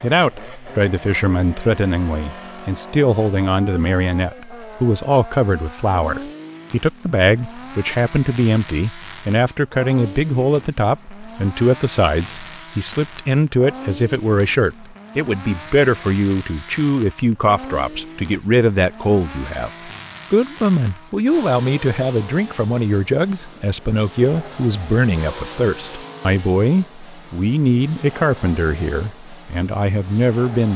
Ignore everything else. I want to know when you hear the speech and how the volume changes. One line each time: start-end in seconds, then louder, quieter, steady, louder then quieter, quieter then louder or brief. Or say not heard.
0.0-30.7 steady.